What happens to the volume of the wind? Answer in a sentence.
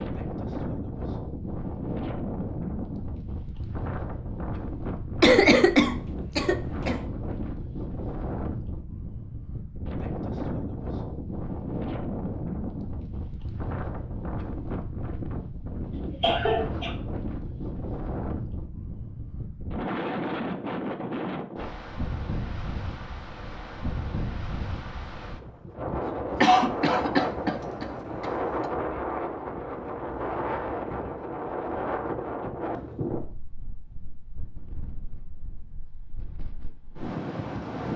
The volume of the wind stays about the same.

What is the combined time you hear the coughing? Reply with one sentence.
The coughing can be heard for 5 seconds in total.